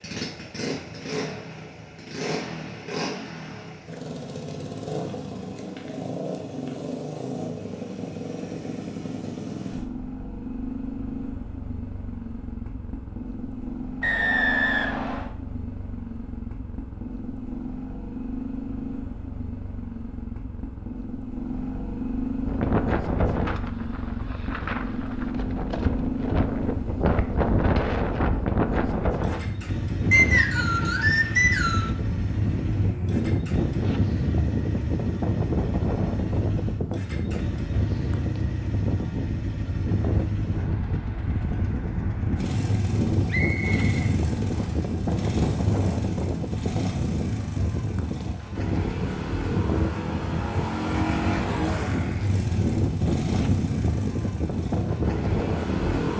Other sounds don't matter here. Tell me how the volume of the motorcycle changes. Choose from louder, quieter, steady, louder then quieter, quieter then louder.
steady.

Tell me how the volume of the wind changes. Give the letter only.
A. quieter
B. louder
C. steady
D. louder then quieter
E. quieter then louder
C.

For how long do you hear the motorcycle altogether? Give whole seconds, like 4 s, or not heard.
56 s.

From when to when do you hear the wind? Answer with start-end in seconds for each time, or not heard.
22.4-56.1.